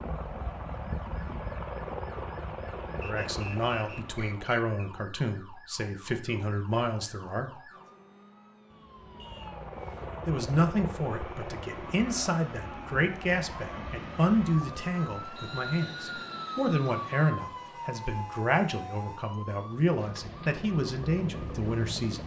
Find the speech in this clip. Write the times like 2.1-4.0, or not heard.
3.0-7.5, 10.2-22.2.